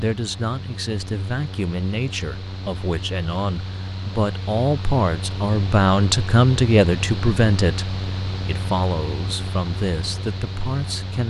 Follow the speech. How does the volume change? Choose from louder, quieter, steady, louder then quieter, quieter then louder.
louder then quieter.